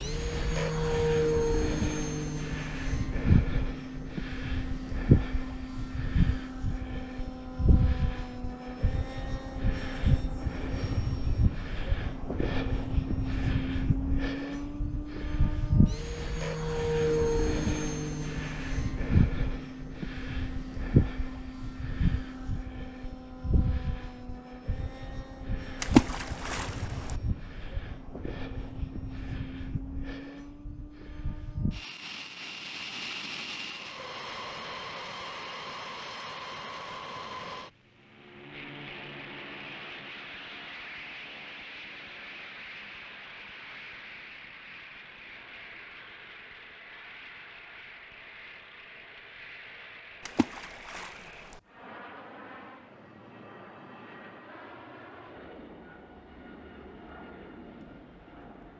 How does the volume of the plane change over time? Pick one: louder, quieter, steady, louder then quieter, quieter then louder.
quieter.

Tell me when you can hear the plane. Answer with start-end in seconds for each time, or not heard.
0.0-58.7.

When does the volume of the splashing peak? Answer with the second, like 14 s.
26 s.